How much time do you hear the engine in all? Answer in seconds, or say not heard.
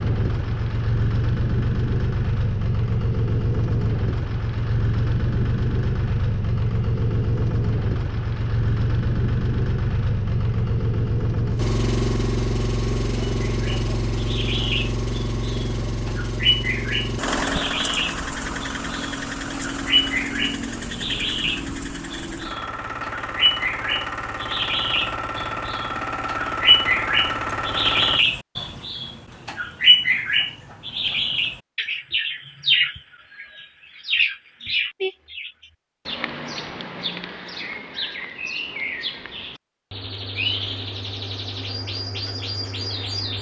28 s.